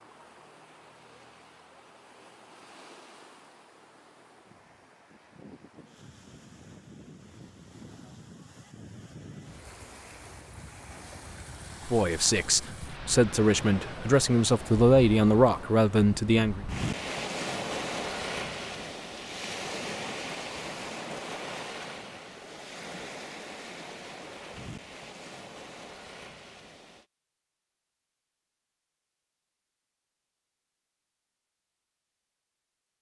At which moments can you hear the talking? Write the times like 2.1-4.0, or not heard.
11.8-16.6.